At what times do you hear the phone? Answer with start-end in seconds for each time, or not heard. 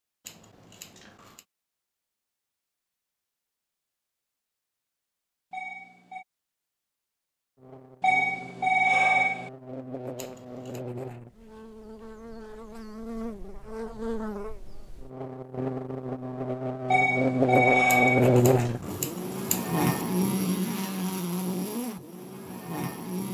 5.5-6.2, 8.0-9.5, 16.9-18.4.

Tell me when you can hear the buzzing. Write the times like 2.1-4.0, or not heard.
7.6-23.2.